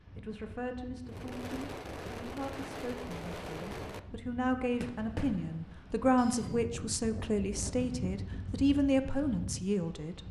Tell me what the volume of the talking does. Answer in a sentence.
The loudness of the talking goes up.